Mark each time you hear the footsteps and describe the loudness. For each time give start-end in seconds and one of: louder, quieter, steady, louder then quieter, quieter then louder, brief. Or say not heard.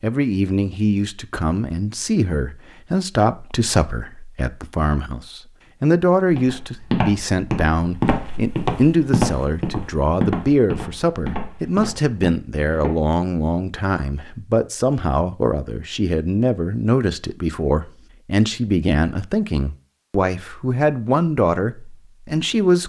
6.2-12.9 quieter.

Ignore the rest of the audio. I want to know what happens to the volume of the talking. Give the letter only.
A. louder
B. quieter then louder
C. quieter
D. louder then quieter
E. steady
E.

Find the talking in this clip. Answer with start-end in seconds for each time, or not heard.
0.0-22.8.